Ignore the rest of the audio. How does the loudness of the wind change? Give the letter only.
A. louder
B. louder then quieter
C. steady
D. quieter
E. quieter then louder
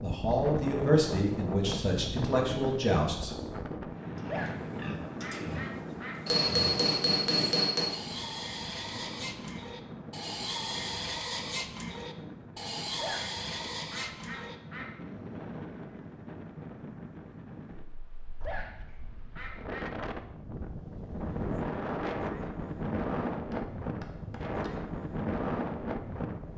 E.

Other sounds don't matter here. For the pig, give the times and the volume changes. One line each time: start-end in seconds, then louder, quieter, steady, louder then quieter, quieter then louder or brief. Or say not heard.
4.2-14.6 louder.